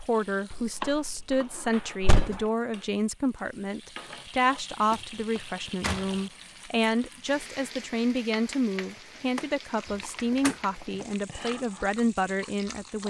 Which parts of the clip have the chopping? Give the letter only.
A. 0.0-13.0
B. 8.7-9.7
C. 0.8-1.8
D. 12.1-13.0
C.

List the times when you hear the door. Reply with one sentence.
You can hear the door from 0.5 to 2.4 s, from 4.9 to 6.2 s and from 9.3 to 10.6 s.